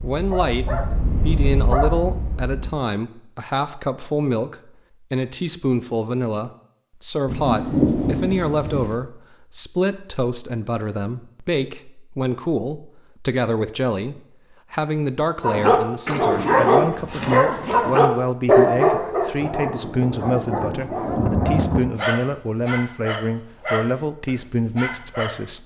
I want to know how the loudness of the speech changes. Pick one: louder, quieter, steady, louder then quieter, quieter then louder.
steady.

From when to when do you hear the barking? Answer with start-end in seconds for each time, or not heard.
0.0-2.8, 15.4-25.4.